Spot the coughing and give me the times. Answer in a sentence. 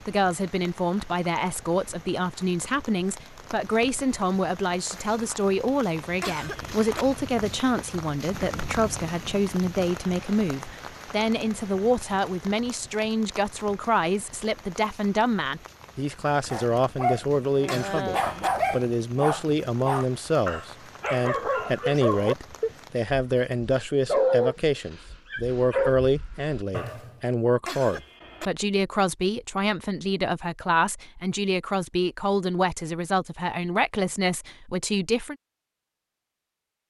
You can hear the coughing from 6.2 to 7.0 s, from 17.6 to 18.5 s and from 27.6 to 28.5 s.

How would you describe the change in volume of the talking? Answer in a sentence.
The volume of the talking stays about the same.